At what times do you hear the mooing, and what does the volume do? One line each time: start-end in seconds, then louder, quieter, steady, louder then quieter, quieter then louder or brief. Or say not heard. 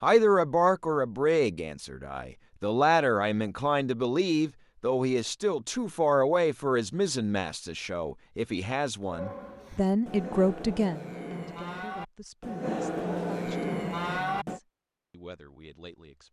9.1-14.6 louder.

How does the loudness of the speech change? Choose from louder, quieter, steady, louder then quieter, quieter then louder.
quieter.